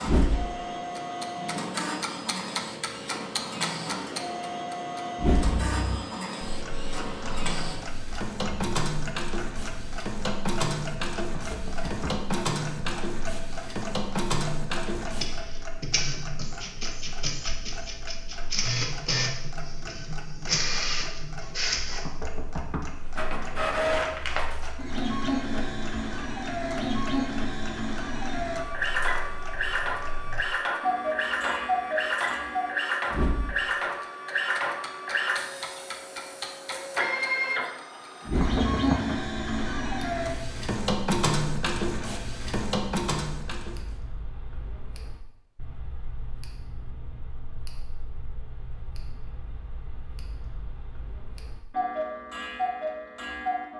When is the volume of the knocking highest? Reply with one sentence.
The volume of the knocking peaks at 39 seconds.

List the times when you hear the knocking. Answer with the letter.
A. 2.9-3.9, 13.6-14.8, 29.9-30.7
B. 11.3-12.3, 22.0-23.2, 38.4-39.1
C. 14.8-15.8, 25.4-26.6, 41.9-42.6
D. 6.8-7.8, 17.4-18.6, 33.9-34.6
B.